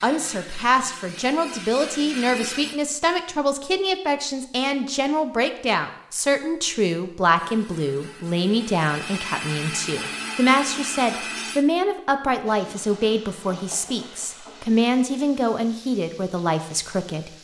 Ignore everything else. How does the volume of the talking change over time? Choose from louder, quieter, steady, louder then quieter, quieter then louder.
steady.